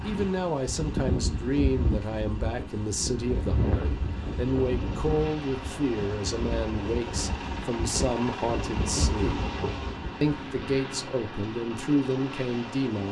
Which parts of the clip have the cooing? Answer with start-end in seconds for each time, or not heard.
not heard.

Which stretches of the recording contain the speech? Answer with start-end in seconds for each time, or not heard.
0.0-9.4, 10.2-13.0.